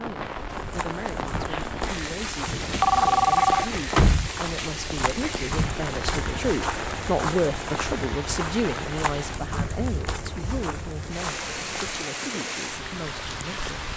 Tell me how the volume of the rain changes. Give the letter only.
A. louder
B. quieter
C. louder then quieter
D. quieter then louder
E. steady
E.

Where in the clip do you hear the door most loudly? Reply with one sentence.
The loudest moment of the door is at 4 seconds.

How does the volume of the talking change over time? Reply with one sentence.
The loudness of the talking goes up, then down.